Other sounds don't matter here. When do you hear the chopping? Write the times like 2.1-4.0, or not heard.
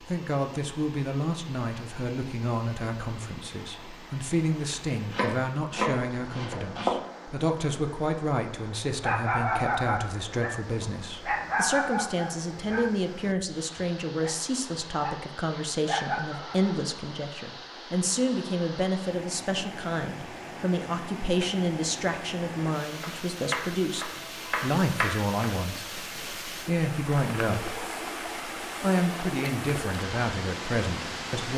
5.1-7.0, 22.9-25.4.